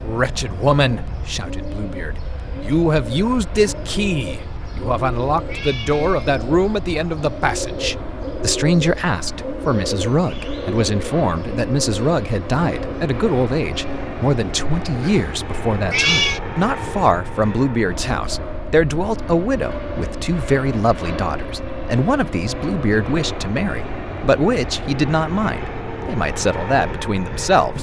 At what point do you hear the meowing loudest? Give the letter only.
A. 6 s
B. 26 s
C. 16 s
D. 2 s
C.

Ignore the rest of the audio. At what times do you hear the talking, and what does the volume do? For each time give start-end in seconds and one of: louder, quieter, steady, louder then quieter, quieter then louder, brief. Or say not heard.
0.0-27.7 steady.